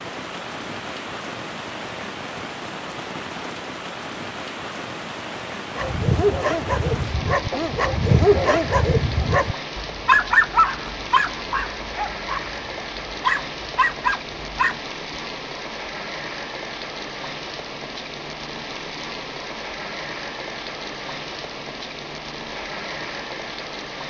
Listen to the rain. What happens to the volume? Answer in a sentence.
The loudness of the rain stays about the same.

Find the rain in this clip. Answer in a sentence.
The rain can be heard from 0.0 to 24.0 s.